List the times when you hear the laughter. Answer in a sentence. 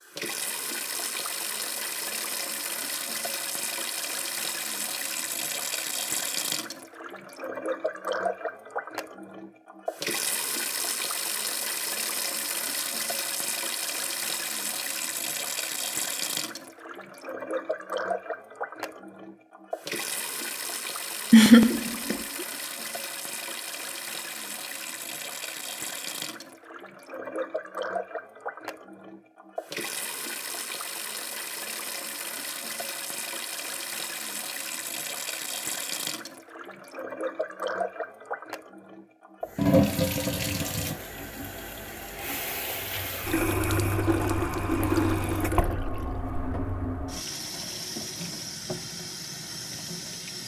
You can hear the laughter from 21.3 to 22.4 s.